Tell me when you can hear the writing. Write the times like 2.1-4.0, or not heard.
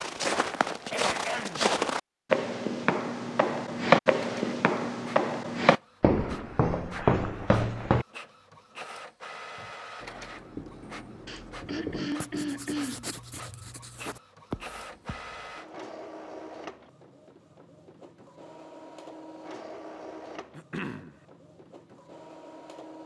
9.6-15.6.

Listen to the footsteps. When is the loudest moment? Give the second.
4 s.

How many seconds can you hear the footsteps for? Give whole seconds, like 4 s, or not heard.
8 s.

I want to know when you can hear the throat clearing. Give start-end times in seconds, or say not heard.
0.9-1.7, 11.2-13.1, 20.5-21.1.